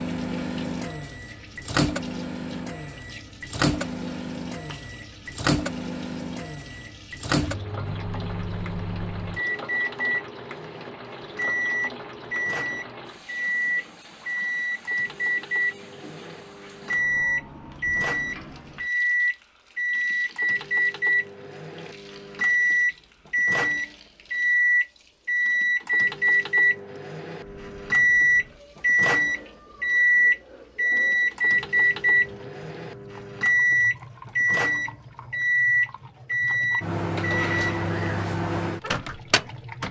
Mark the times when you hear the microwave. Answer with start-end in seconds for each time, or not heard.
0.0-39.8.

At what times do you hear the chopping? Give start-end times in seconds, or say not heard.
not heard.